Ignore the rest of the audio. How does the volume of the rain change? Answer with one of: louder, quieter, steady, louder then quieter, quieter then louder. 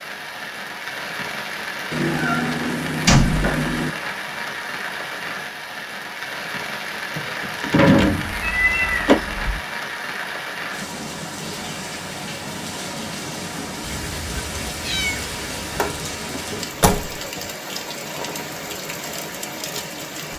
steady.